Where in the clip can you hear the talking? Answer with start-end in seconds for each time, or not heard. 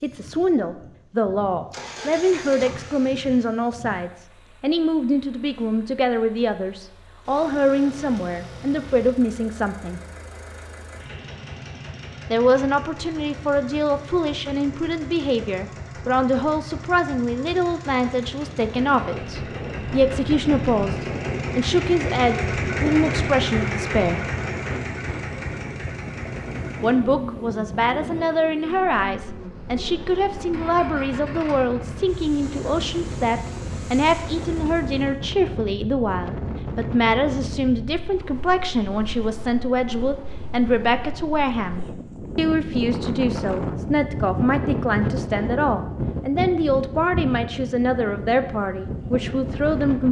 0.0-10.0, 12.3-20.9, 21.6-24.3, 26.8-50.0.